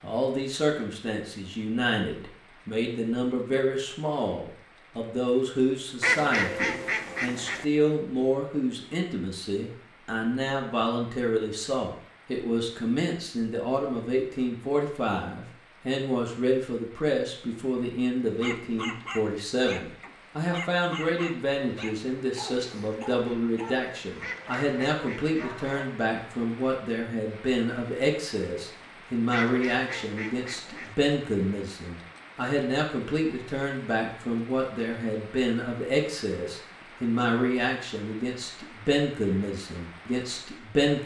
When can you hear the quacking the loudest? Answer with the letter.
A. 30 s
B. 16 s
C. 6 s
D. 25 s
C.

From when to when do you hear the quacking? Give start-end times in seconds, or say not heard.
6.0-7.7, 24.2-25.6, 29.3-30.9.